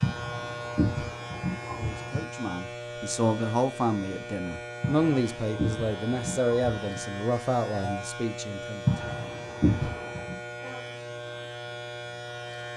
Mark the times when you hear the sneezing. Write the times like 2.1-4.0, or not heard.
0.0-2.2, 4.8-6.9, 8.8-10.3.